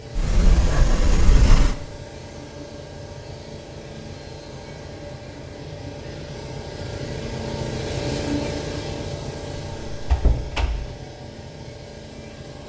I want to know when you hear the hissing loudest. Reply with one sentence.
The loudest moment of the hissing is at 8 seconds.